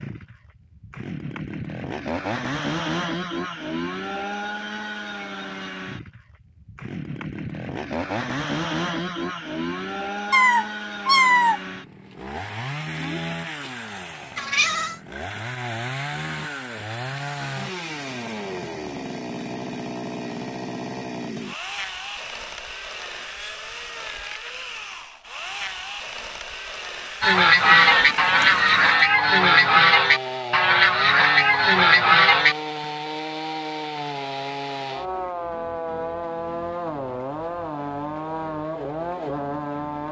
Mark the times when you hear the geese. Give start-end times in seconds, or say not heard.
27.2-32.5.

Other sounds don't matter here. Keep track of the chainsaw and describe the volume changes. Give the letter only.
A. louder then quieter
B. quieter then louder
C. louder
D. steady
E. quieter
D.